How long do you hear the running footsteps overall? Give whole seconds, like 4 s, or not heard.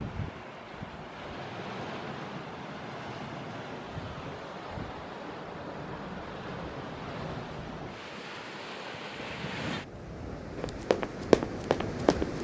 2 s.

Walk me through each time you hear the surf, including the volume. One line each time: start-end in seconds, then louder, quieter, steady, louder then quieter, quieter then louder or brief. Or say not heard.
0.0-12.3 steady.